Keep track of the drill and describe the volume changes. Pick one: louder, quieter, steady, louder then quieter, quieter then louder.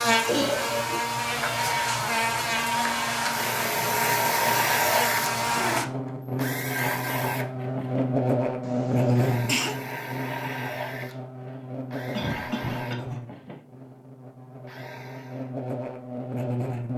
quieter.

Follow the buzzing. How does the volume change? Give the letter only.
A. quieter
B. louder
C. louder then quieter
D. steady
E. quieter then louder
A.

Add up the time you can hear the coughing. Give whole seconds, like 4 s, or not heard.
3 s.